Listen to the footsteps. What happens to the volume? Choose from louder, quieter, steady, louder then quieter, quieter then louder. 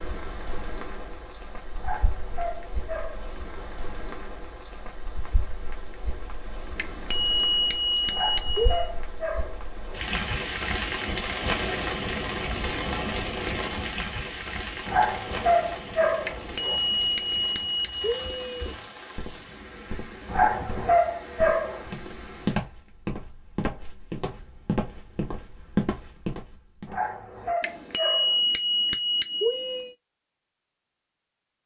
louder.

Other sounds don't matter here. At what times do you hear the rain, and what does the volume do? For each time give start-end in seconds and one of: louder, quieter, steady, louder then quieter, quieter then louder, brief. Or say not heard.
0.0-22.7 louder then quieter.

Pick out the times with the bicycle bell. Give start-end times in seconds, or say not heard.
6.8-8.9, 16.2-18.8, 27.6-29.9.